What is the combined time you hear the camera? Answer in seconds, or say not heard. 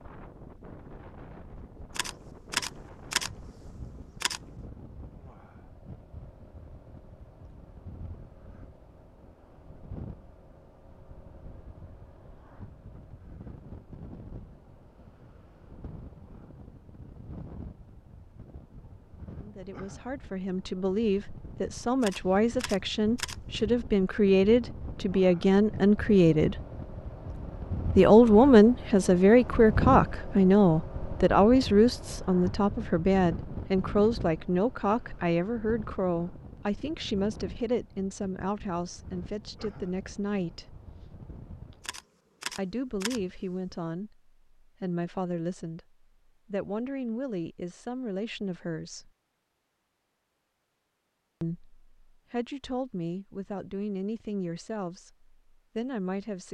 6 s.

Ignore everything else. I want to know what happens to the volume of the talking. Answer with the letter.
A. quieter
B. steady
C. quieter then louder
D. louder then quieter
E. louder
D.